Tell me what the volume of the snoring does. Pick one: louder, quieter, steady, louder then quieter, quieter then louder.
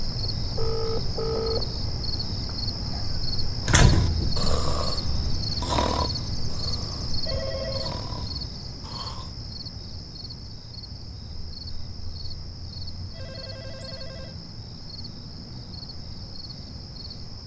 quieter.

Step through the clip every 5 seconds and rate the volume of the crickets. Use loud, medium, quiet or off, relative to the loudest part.
loud, loud, medium, medium.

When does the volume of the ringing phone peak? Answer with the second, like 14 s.
1 s.